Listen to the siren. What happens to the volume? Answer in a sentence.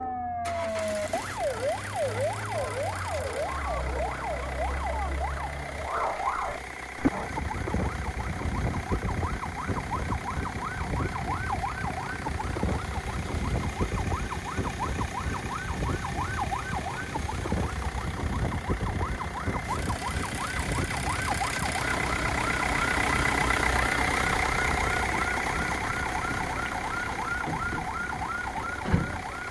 The loudness of the siren stays about the same.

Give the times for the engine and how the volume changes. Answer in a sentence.
You can hear the engine from 0.0 to 29.4 s, getting louder.